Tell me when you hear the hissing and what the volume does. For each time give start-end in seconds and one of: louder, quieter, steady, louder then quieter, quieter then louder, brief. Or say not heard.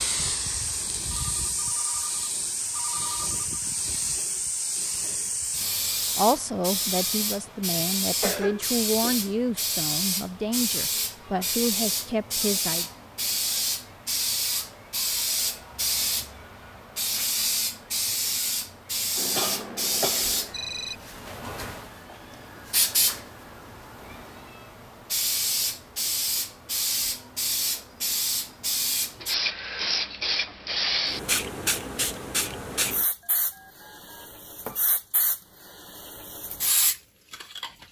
0.0-37.8 steady.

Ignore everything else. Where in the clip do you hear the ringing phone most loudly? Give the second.
21 s.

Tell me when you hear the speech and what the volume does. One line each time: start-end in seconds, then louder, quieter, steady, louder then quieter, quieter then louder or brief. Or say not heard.
6.2-12.8 steady.